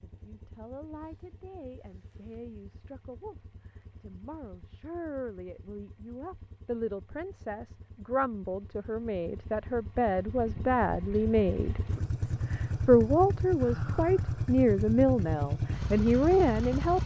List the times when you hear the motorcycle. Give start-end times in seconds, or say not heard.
0.0-17.0.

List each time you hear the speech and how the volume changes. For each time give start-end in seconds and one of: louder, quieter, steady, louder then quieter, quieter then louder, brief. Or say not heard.
0.0-17.0 louder.